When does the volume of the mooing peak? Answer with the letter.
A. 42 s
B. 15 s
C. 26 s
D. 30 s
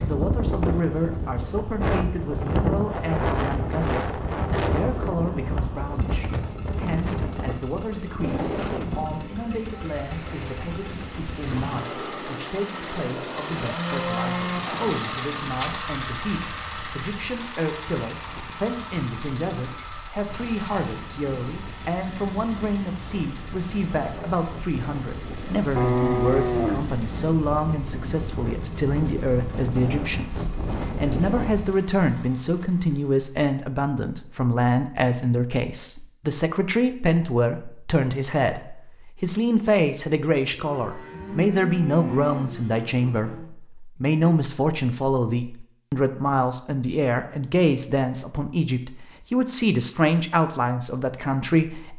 C.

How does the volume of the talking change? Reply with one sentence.
The loudness of the talking goes up.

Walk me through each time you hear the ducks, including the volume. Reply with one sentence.
You can't hear the ducks here.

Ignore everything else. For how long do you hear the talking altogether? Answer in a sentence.
The talking can be heard for 52 seconds in total.